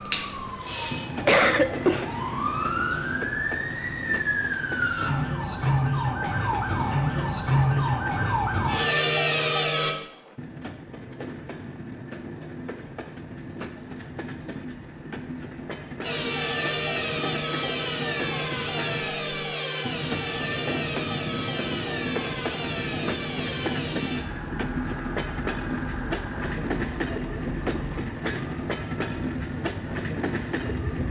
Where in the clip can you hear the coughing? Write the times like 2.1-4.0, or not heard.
0.7-2.1.